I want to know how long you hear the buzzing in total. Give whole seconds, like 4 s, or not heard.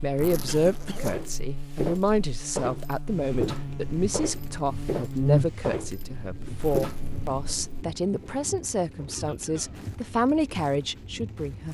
8 s.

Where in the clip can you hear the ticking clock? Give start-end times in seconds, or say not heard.
not heard.